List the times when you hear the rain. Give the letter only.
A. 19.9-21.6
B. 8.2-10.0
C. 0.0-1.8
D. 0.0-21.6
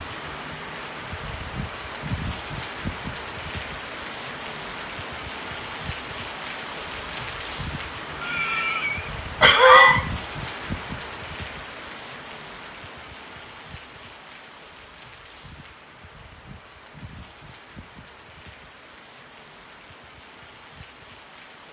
D.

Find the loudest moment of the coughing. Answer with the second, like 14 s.
10 s.